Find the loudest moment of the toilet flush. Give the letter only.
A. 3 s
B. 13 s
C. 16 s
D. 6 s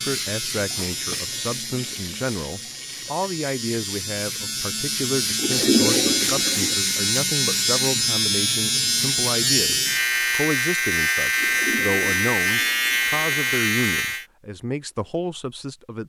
D.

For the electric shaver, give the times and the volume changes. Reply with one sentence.
You can hear the electric shaver from 0.0 to 14.2 s, getting louder.